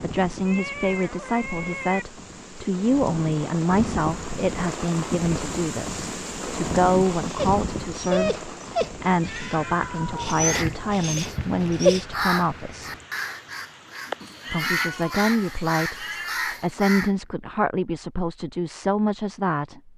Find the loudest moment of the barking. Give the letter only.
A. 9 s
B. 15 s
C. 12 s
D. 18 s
C.